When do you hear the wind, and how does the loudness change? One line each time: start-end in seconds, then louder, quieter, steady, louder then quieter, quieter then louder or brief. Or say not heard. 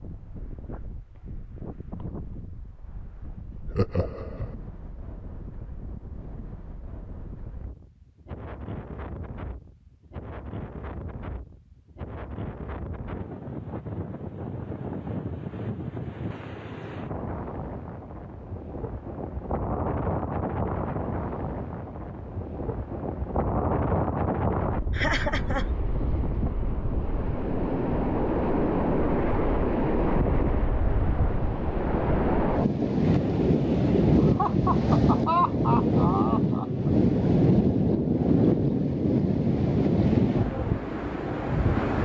0.0-41.9 louder.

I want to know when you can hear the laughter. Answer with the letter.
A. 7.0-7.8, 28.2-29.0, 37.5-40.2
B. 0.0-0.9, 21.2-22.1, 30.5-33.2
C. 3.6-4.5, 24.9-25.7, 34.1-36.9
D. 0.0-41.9
C.